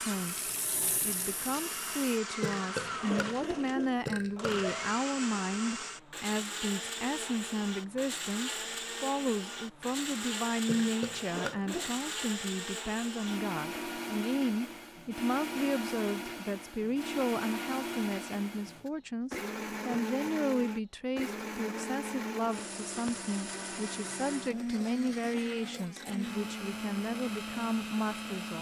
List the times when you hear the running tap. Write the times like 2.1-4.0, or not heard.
0.0-2.2.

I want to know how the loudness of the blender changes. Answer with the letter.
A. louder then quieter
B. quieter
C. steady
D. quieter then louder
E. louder
C.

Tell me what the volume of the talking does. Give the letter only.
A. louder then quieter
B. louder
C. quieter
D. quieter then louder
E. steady
E.